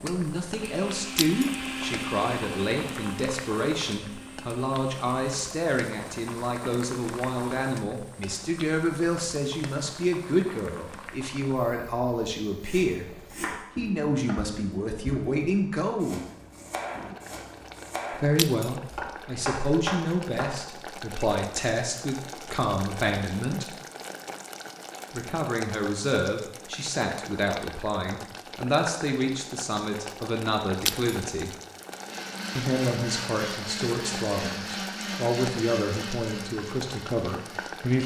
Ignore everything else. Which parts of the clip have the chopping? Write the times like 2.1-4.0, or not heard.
12.6-20.5.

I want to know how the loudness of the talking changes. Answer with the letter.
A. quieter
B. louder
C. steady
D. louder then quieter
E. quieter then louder
C.